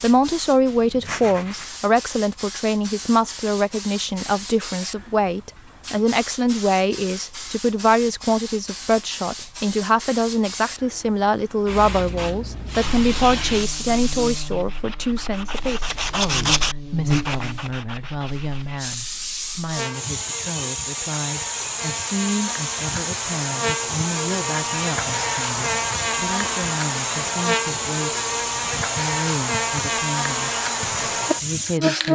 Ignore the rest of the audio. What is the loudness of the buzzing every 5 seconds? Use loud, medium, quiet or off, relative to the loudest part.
off, off, quiet, medium, medium, loud, loud.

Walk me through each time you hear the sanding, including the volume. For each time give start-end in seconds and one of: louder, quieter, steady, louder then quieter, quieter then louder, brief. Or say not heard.
0.2-1.7 brief
13.5-19.1 louder then quieter.